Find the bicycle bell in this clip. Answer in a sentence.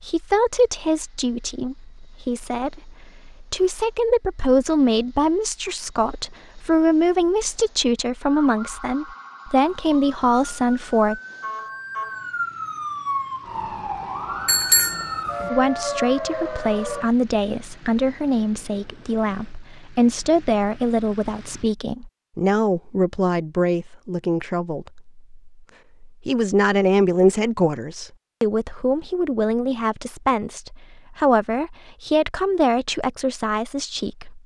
The bicycle bell can be heard from 14.4 to 15.5 s.